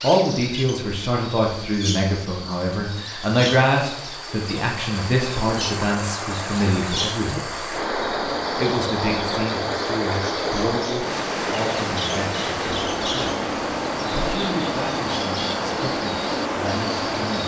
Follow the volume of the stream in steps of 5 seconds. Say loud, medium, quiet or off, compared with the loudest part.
quiet, loud, loud, loud.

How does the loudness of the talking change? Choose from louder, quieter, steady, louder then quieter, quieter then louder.
quieter.